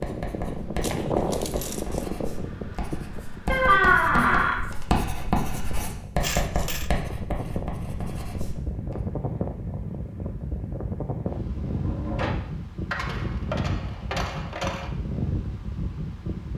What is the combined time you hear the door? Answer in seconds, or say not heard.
2 s.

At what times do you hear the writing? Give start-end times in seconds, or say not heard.
0.0-8.9.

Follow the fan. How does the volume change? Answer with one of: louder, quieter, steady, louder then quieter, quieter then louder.
quieter then louder.